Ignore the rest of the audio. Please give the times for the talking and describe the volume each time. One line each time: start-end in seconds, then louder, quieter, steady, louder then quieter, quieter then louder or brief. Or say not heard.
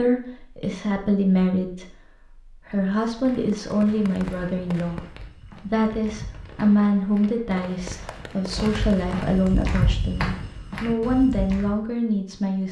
0.0-12.6 steady.